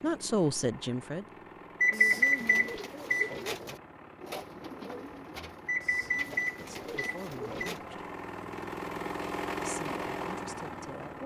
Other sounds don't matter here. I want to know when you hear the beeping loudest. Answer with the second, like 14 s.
2 s.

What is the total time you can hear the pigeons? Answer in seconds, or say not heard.
6 s.